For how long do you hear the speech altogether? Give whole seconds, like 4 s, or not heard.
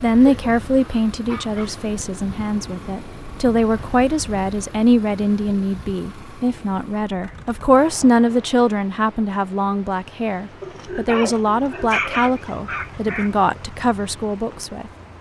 15 s.